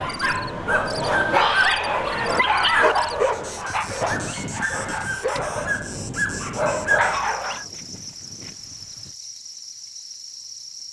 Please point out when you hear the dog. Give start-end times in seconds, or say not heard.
0.0-7.7.